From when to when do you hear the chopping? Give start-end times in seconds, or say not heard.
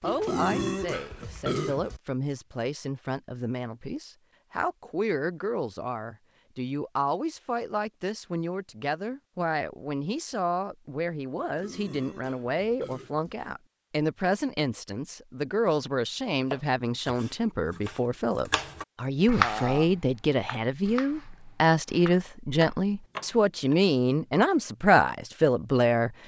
16.5-23.8.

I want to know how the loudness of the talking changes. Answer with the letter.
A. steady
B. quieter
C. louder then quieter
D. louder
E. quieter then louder
D.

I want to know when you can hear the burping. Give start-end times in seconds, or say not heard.
0.0-2.0, 11.3-13.3, 19.4-19.9.